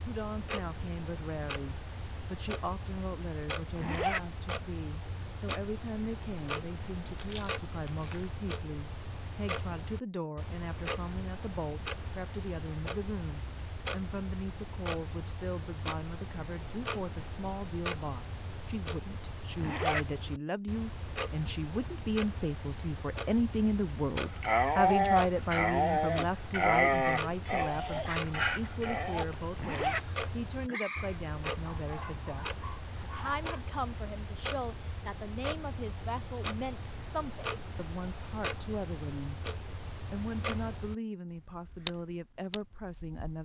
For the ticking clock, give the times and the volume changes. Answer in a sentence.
You can hear the ticking clock from 0.0 to 43.4 s, at a steady volume.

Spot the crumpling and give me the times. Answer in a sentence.
You can hear the crumpling from 7.0 to 8.3 s.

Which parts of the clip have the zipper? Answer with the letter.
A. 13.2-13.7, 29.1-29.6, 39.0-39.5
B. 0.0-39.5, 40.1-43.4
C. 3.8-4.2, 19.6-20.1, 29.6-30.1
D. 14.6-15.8
C.